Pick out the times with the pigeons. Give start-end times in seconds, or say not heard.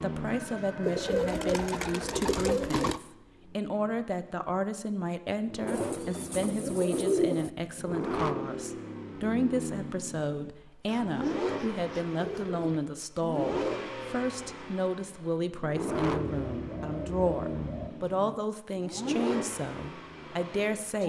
0.8-3.0, 5.7-7.5, 10.8-12.8, 15.9-17.9.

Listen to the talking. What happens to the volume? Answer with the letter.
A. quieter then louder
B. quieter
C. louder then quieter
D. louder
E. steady
E.